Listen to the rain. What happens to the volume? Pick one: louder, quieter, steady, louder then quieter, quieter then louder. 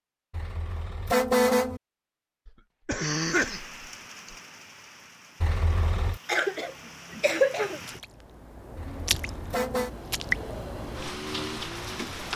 louder.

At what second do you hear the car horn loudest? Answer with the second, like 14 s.
1 s.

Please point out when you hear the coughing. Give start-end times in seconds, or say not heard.
2.5-4.3, 6.2-7.8.